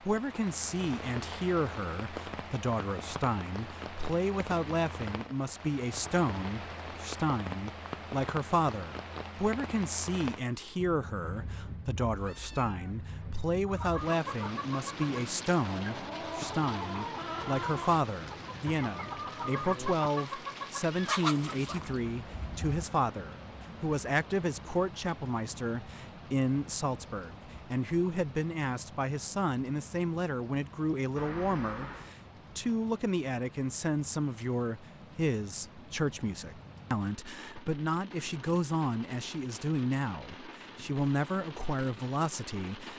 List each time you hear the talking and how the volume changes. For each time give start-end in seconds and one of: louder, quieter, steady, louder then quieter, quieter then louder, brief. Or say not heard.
0.0-42.9 steady.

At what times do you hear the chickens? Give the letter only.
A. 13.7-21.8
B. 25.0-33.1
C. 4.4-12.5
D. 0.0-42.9
A.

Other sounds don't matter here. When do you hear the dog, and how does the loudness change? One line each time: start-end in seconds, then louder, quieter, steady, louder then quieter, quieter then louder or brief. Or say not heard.
not heard.